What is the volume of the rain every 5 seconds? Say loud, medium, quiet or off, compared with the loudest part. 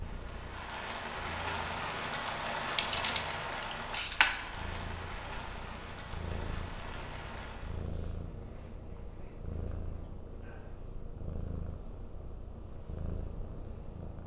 loud, medium, off.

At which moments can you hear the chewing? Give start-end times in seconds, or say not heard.
not heard.